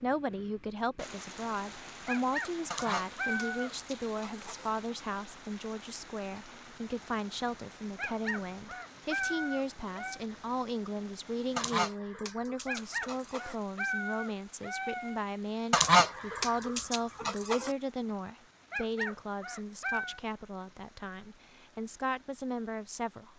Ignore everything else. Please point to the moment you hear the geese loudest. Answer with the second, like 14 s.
16 s.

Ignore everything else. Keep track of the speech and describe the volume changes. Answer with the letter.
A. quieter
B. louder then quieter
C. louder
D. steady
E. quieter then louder
D.